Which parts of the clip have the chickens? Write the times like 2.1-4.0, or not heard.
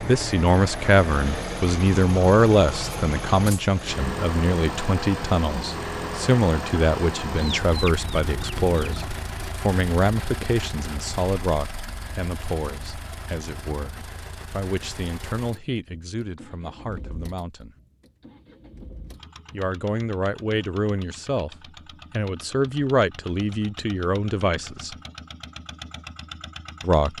7.3-9.2.